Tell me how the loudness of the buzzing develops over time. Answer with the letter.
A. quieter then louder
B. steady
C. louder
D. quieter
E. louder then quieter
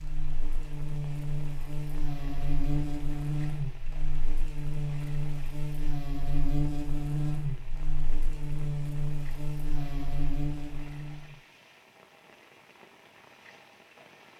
B.